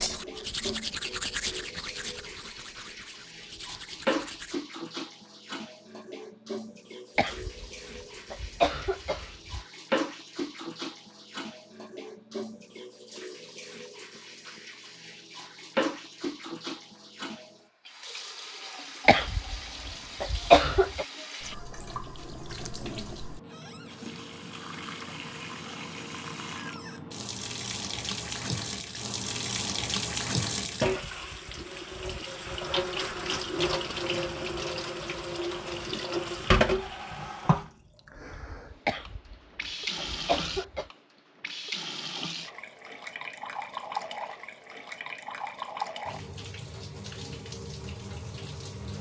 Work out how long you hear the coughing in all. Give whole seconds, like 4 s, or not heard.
6 s.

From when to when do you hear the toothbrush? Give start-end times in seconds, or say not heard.
0.0-4.6.